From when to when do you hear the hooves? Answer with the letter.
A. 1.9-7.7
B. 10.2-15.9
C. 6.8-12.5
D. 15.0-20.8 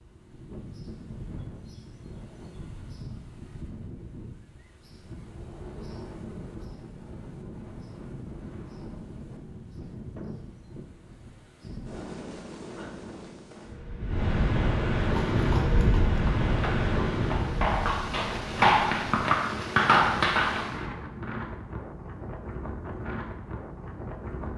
D.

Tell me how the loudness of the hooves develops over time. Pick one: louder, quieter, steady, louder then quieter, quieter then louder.
louder.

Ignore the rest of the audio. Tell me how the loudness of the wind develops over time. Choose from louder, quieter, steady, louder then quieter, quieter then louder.
louder then quieter.